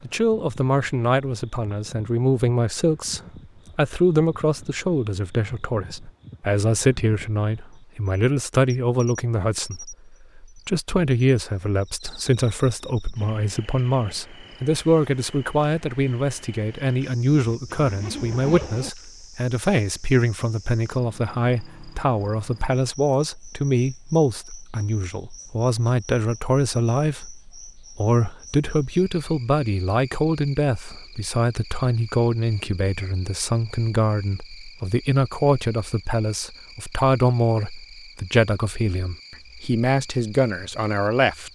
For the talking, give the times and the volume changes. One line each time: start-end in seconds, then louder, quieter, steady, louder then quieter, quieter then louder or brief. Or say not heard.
0.0-41.5 steady.